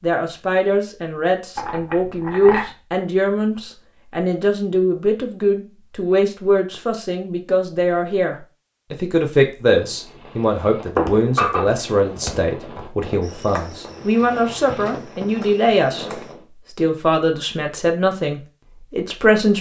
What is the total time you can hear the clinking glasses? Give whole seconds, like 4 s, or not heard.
2 s.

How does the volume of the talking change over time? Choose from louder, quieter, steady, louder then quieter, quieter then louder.
steady.